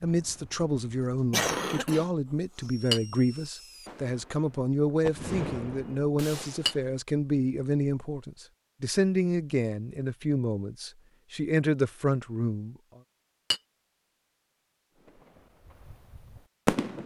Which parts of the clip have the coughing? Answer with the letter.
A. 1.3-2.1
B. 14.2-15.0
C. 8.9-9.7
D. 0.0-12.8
A.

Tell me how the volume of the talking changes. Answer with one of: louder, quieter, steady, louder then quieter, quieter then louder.
steady.